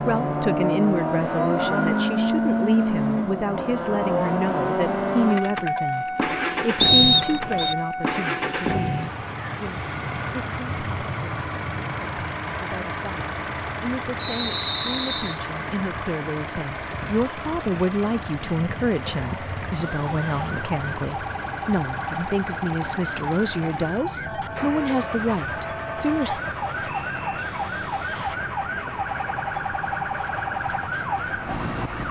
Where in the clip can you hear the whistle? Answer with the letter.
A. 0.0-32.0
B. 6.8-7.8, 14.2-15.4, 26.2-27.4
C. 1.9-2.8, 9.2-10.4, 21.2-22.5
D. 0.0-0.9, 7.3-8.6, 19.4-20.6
B.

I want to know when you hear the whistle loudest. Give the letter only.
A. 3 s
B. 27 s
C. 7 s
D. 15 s
C.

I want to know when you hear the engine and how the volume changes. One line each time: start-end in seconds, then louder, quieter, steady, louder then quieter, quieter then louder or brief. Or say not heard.
0.0-32.0 quieter.